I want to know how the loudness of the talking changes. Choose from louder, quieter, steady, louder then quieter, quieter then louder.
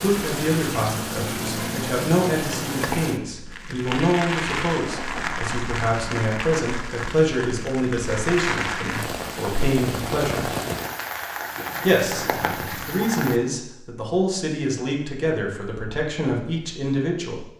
steady.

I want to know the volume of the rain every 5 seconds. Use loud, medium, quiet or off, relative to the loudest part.
loud, loud, loud, off.